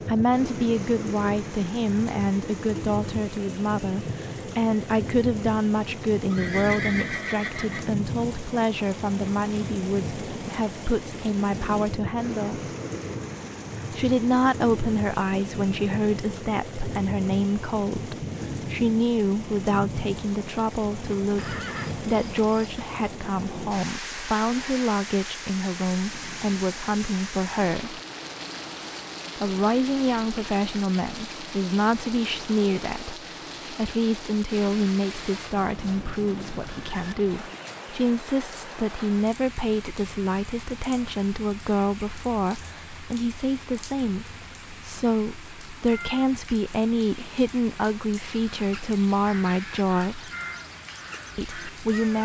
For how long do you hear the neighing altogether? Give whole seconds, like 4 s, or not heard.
5 s.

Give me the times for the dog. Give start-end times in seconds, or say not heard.
not heard.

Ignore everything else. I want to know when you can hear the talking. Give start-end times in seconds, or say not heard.
0.0-12.6, 13.9-28.0, 29.4-50.3, 51.4-52.2.